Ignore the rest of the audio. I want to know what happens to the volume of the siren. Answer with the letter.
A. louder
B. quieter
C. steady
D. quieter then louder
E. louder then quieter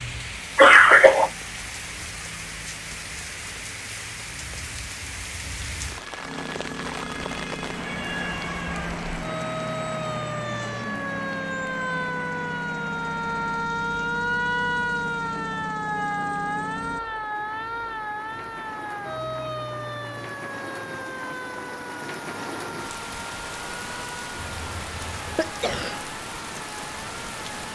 E.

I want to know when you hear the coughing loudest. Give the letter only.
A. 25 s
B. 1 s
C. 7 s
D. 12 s
B.